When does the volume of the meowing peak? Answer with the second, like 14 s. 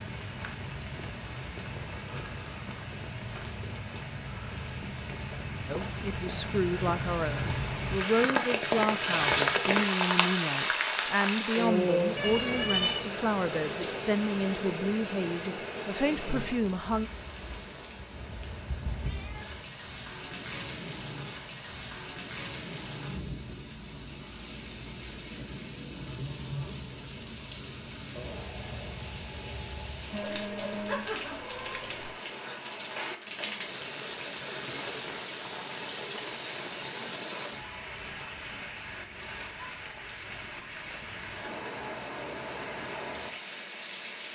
13 s.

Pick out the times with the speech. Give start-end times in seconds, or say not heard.
5.7-17.1.